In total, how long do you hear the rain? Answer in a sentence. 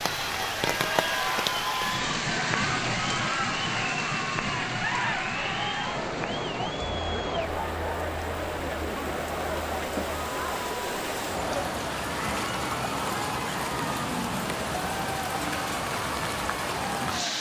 You can hear the rain for 17 seconds altogether.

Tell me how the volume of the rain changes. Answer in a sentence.
The volume of the rain goes down, then up.